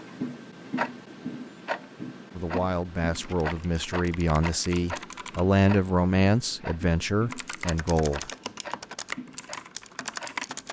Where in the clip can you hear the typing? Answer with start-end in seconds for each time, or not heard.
3.1-5.5, 7.3-10.6.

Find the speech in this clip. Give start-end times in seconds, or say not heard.
2.4-8.3.